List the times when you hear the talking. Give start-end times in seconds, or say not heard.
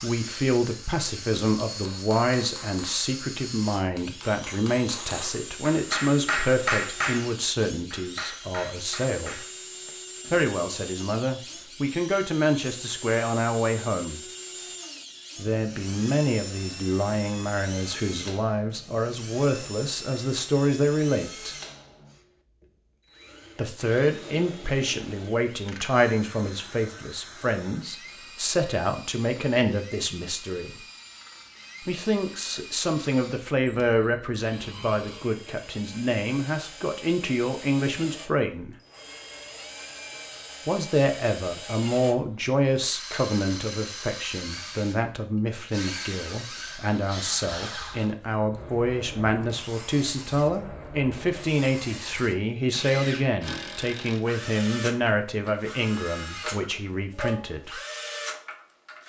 0.0-9.4, 10.3-14.2, 15.3-21.6, 23.6-30.8, 31.9-38.8, 40.6-57.8.